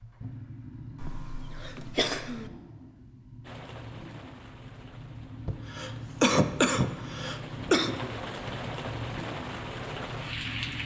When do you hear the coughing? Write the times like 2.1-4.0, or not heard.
1.0-2.5, 5.5-7.9.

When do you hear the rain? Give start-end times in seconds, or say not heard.
3.4-10.8.